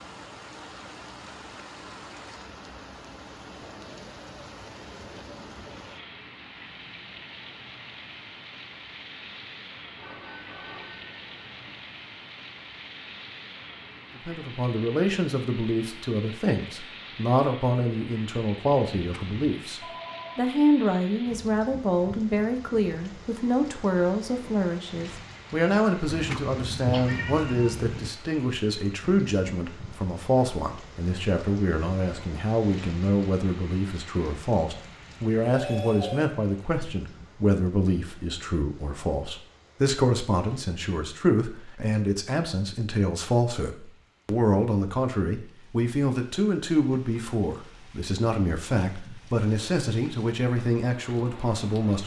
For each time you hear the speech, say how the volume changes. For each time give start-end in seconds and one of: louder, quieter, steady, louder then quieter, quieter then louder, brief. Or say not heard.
14.2-52.0 steady.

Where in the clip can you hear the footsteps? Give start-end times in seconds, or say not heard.
not heard.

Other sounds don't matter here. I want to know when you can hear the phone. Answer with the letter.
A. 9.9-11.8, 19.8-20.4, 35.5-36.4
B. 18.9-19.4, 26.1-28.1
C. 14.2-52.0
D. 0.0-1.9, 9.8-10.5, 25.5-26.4
A.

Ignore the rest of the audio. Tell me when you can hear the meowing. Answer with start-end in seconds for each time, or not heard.
18.9-19.4, 26.1-28.1.